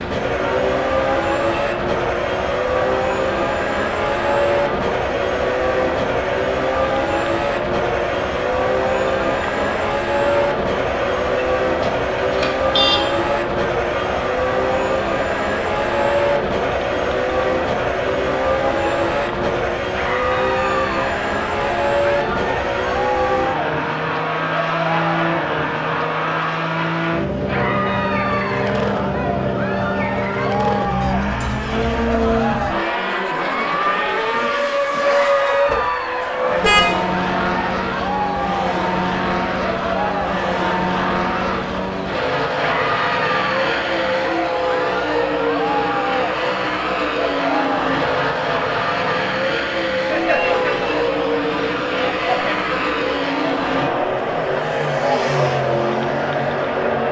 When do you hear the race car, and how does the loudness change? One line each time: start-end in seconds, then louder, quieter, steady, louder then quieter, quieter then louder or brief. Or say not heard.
0.0-57.0 steady.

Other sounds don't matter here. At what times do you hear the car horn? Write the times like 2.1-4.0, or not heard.
11.8-13.1, 35.6-37.0.